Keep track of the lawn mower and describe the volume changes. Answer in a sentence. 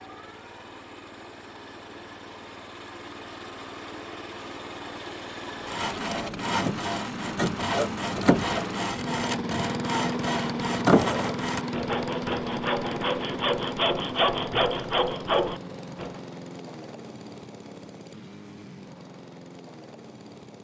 The volume of the lawn mower goes up, then down.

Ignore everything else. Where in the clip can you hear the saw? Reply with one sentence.
You can hear the saw from 5.7 to 16.1 s.